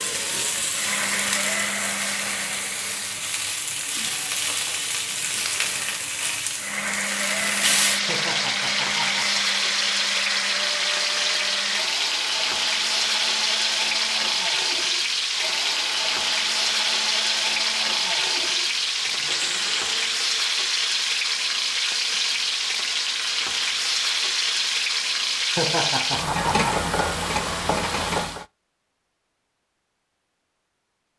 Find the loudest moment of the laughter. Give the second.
26 s.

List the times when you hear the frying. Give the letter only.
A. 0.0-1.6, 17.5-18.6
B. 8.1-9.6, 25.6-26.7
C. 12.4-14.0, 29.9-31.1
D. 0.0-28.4
D.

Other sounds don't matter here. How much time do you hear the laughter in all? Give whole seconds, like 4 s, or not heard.
3 s.